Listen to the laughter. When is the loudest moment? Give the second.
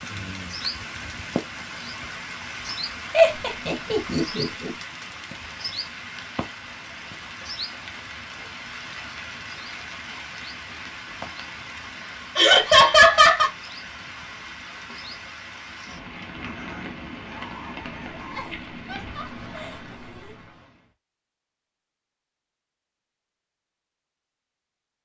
13 s.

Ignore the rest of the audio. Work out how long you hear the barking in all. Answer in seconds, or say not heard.
2 s.